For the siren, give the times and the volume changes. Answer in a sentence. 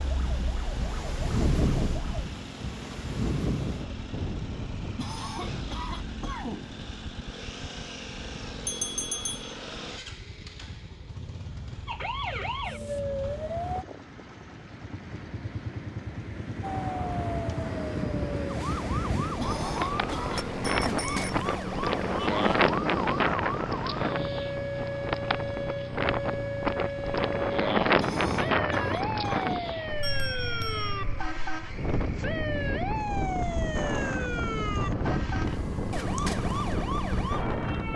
You can hear the siren briefly from 0.0 to 2.3 s; briefly from 11.8 to 13.8 s; and from 16.6 to 37.9 s, at a steady volume.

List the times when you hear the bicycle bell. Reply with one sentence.
The bicycle bell can be heard from 8.7 to 9.6 s, from 19.4 to 21.4 s and from 30.0 to 31.0 s.